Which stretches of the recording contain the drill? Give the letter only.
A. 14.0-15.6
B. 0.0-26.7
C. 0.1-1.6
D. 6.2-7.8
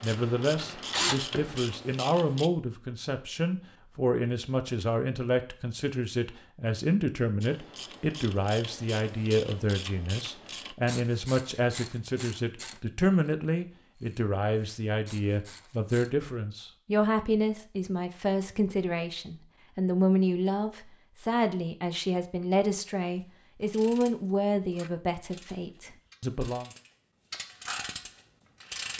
C.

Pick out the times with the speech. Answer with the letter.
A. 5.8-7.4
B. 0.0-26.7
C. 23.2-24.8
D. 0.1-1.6
B.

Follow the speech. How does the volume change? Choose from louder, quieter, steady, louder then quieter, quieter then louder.
steady.